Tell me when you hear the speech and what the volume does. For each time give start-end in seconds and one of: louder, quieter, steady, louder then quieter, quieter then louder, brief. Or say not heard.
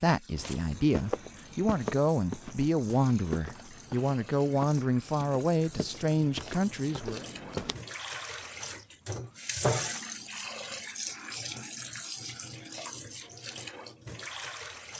0.0-7.2 steady.